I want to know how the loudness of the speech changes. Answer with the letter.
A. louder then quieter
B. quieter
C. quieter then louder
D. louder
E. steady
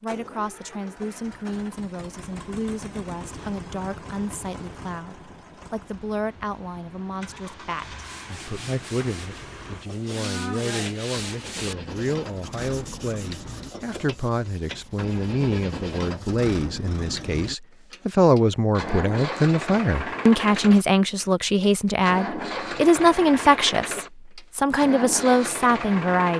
D.